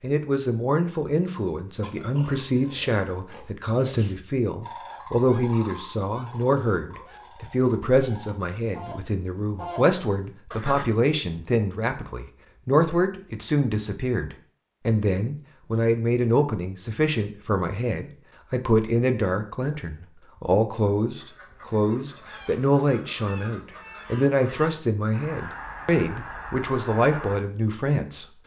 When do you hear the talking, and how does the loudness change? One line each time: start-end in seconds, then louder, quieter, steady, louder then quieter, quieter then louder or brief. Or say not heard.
0.0-28.4 steady.